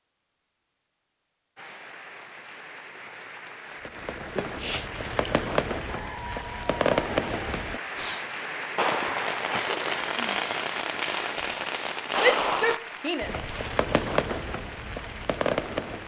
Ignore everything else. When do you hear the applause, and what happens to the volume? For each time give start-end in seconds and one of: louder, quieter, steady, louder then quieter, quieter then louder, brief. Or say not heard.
1.6-16.0 louder then quieter.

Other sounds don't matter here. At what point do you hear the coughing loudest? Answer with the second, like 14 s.
5 s.